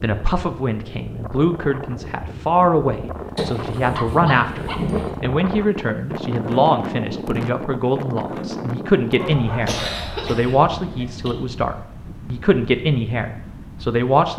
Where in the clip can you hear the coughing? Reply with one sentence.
You can hear the coughing from 3.4 to 5.2 s and from 9.7 to 11.3 s.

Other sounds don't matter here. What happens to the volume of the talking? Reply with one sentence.
The volume of the talking stays about the same.